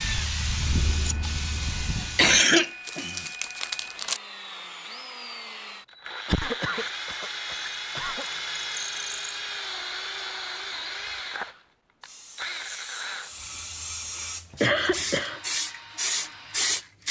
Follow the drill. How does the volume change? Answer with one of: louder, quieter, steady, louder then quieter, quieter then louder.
louder then quieter.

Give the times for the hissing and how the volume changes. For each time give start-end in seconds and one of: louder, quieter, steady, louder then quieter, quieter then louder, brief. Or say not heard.
0.0-2.4 brief
12.0-17.0 louder.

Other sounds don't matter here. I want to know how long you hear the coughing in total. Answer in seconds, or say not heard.
5 s.